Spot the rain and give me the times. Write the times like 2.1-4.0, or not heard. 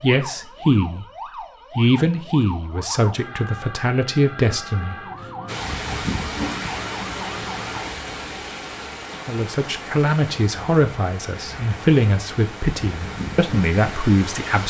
5.5-14.6.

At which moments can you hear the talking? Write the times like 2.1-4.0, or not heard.
0.0-1.1, 1.8-5.5, 9.2-14.6.